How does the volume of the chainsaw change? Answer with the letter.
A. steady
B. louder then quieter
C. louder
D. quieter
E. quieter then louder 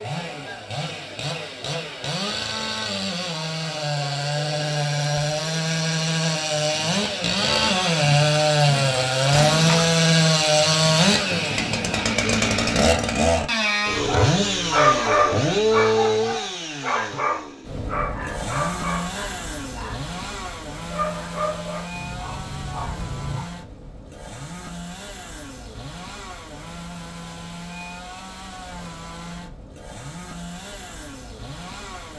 B.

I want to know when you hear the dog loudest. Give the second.
15 s.